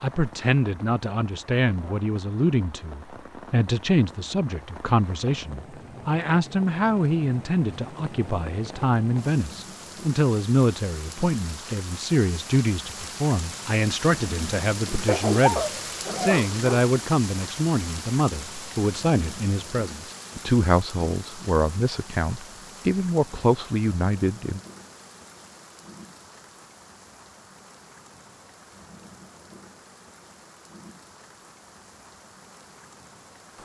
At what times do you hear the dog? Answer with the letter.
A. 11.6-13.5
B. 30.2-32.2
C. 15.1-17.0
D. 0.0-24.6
C.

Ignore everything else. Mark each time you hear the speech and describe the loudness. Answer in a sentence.
The speech can be heard from 0.0 to 24.6 s, at a steady volume.